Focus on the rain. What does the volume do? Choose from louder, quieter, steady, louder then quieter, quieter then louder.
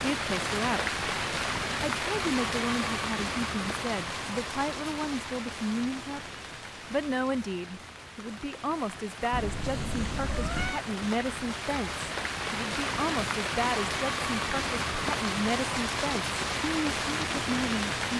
quieter then louder.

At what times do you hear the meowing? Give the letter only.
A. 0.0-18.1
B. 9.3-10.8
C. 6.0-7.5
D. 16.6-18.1
B.